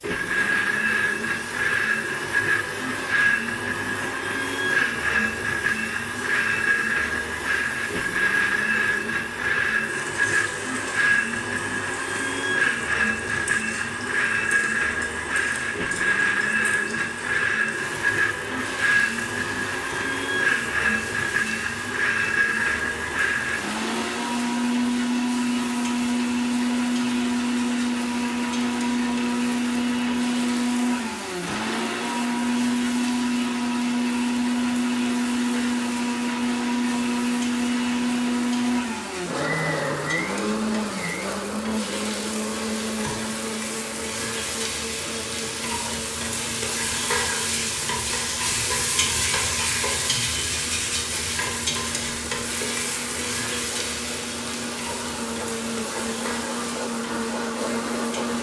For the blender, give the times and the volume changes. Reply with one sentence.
You can hear the blender from 0.0 to 58.3 s, getting quieter.